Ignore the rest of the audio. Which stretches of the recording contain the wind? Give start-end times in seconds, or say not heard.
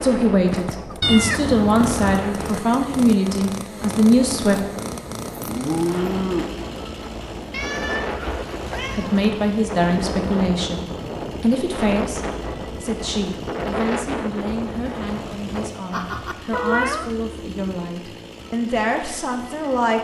0.0-15.7.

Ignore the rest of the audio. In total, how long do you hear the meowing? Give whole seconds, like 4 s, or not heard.
5 s.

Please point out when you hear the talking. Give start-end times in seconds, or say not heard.
0.0-4.6, 8.9-19.9.